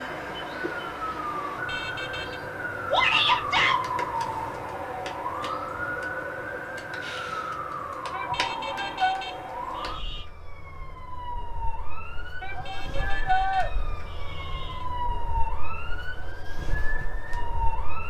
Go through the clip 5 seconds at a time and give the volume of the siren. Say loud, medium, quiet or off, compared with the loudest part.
loud, loud, medium, loud.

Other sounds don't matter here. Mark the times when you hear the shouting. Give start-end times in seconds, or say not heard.
2.9-3.9, 8.1-9.3, 12.4-13.7.